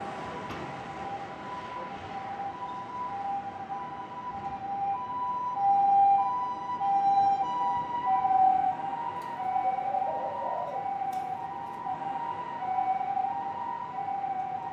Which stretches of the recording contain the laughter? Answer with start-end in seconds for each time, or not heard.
not heard.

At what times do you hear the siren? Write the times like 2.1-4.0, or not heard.
0.0-14.6.